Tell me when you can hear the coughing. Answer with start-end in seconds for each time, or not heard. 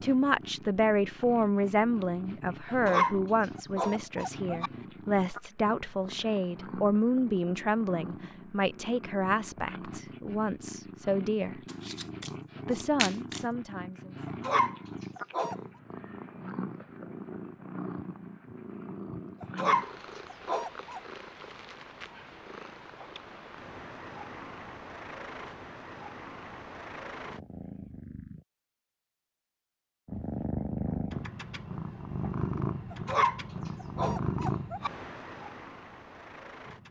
not heard.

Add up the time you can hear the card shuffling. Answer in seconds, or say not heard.
2 s.